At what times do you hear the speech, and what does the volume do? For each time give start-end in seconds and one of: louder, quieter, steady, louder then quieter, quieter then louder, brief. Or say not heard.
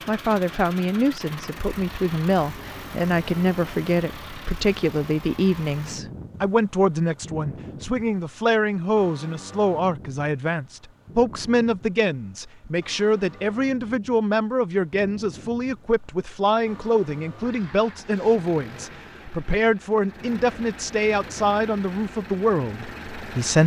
0.1-23.6 steady.